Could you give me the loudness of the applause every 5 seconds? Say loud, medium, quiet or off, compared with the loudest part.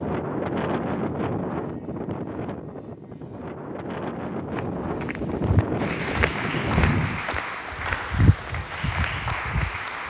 off, loud.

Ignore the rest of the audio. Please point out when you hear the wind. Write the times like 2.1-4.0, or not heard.
0.0-7.3.